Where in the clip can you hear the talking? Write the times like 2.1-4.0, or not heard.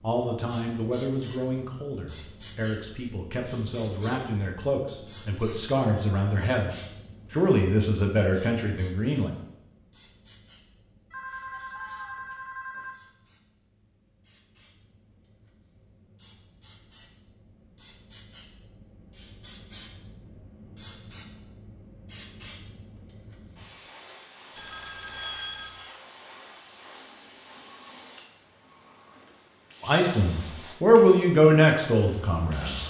0.0-9.3, 29.8-32.8.